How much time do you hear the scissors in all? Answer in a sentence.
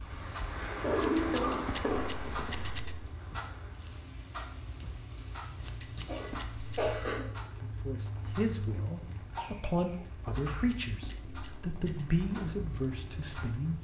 You can hear the scissors for 5 seconds altogether.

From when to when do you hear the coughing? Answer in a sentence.
The coughing can be heard from 0.8 to 2.4 s, from 5.6 to 7.3 s and from 9.3 to 10.8 s.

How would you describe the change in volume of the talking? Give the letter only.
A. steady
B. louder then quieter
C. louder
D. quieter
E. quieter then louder
A.